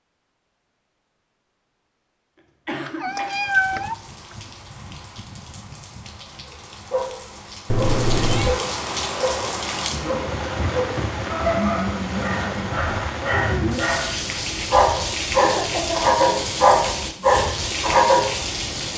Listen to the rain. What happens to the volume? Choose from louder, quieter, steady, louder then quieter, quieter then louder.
louder.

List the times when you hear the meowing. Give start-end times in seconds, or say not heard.
2.9-4.0, 7.7-8.6, 13.3-14.1.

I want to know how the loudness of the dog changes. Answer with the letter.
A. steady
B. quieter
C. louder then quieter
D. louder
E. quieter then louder
D.